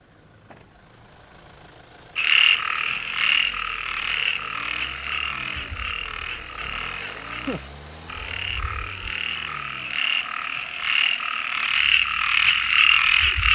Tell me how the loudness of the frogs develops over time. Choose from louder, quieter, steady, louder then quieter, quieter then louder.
quieter then louder.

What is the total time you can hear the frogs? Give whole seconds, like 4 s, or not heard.
11 s.